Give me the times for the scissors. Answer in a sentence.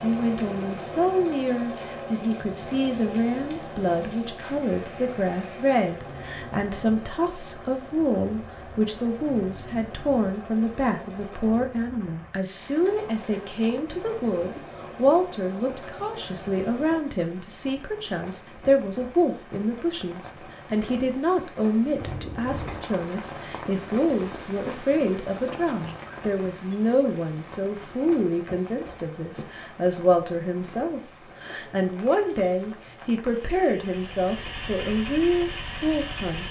You can hear the scissors from 22.0 to 22.9 s.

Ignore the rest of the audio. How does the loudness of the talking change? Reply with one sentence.
The loudness of the talking stays about the same.